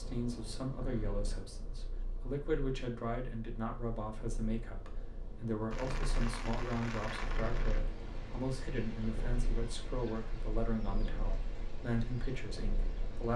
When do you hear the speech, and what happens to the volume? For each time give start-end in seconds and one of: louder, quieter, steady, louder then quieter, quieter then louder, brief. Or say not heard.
0.0-13.3 steady.